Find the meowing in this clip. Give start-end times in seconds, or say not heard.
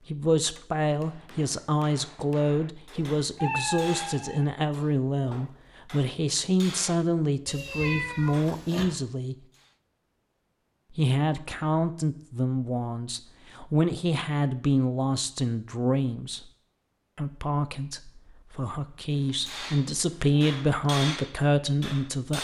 3.0-4.5, 7.5-8.8, 19.1-20.4.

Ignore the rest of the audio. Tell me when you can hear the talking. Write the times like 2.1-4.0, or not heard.
0.1-9.3, 10.9-16.4, 17.1-22.3.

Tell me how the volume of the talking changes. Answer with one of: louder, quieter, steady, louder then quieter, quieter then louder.
steady.